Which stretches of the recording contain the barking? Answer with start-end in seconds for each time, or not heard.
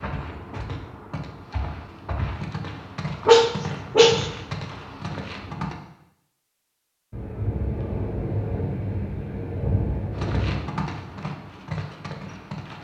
3.2-4.2.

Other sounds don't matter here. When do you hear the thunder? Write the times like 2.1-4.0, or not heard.
7.1-10.7.